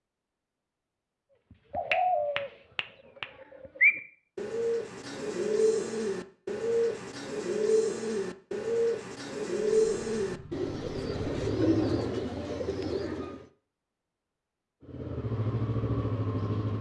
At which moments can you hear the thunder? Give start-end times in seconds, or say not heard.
not heard.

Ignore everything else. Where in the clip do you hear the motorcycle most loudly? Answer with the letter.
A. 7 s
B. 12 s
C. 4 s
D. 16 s
D.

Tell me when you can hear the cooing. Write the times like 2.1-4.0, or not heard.
1.7-13.4.